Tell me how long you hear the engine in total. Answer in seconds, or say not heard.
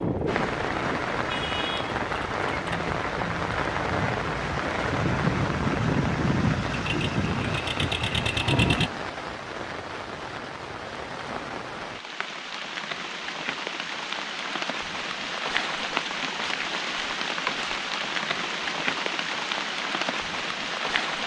9 s.